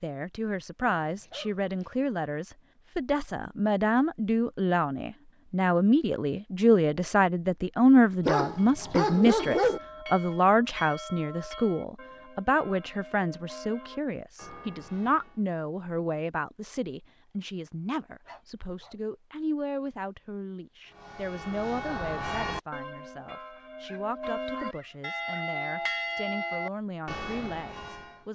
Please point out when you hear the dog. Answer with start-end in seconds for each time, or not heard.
1.0-1.9, 8.2-9.8, 18.2-19.0, 23.8-25.4.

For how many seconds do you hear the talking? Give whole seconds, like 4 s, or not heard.
28 s.